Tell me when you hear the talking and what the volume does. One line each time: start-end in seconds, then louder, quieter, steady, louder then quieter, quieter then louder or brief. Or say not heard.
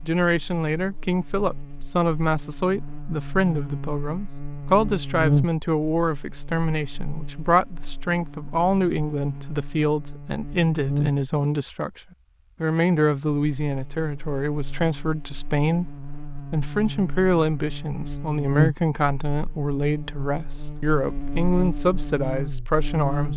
0.0-12.0 steady
12.6-23.3 steady.